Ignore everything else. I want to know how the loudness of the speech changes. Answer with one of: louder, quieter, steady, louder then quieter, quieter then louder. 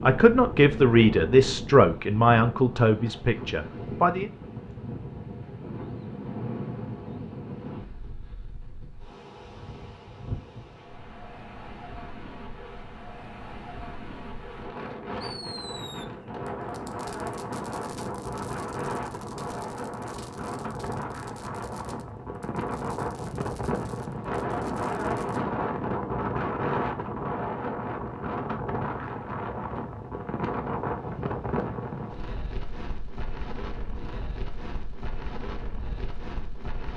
quieter.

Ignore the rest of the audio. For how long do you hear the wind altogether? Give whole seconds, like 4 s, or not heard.
37 s.